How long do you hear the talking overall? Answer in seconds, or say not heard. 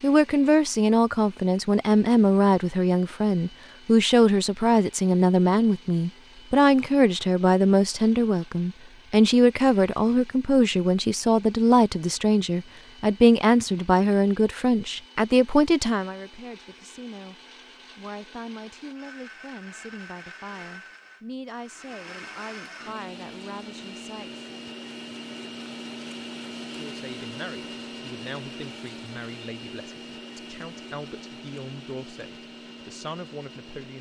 32 s.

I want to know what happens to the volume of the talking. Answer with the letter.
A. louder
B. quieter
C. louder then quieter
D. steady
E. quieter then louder
B.